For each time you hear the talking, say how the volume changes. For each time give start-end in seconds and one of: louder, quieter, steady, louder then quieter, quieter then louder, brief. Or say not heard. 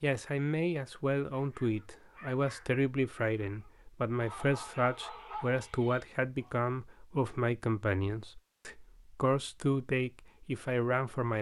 0.0-11.3 steady.